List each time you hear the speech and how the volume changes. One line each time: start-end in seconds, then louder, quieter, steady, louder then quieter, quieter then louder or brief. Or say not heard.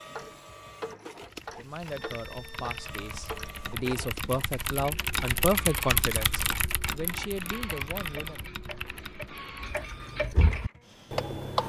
1.6-8.4 louder then quieter.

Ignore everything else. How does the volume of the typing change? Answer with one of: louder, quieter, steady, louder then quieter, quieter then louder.
louder then quieter.